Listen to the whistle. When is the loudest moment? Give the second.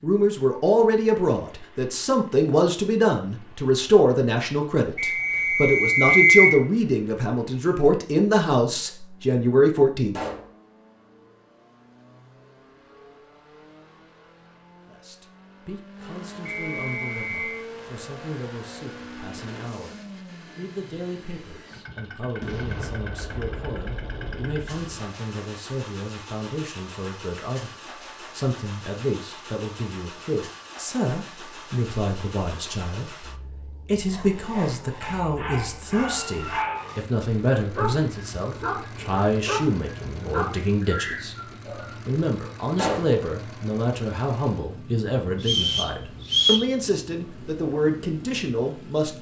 6 s.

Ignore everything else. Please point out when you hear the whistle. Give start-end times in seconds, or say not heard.
5.0-6.6, 16.4-17.6, 45.4-46.7.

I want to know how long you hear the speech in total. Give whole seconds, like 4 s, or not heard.
44 s.